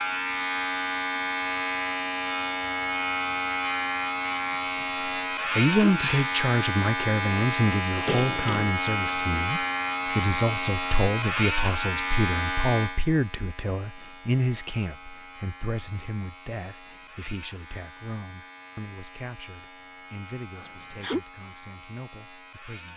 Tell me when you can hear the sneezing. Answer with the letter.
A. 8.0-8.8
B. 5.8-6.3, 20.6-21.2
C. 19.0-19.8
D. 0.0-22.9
B.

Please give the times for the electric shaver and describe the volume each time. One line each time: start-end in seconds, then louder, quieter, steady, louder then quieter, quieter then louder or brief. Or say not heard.
0.0-22.9 quieter.